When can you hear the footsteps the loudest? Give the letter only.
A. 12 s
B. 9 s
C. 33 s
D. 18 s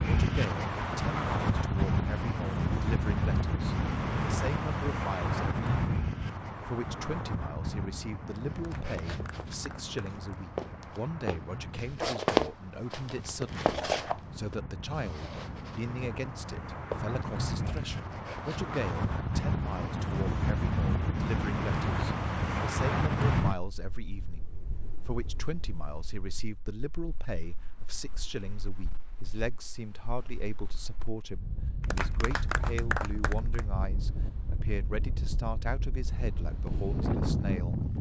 A.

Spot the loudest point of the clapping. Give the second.
33 s.